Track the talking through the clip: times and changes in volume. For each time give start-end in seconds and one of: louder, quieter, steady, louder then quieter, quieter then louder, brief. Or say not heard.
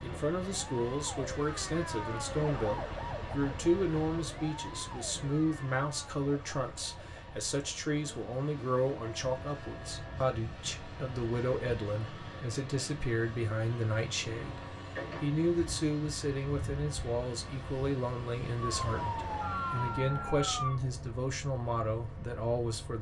0.0-22.9 steady.